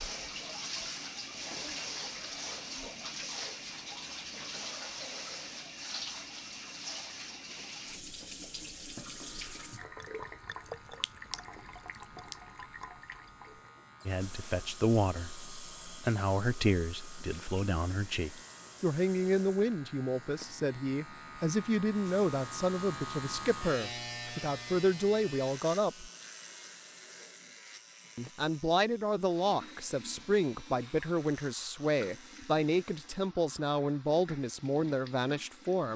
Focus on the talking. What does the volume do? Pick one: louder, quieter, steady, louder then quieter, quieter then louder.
steady.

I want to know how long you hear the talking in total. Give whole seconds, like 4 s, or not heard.
20 s.